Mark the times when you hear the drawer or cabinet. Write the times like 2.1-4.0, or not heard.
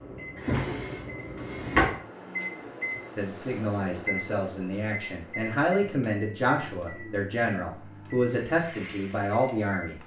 0.3-1.9.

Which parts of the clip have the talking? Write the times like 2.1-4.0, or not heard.
3.1-10.0.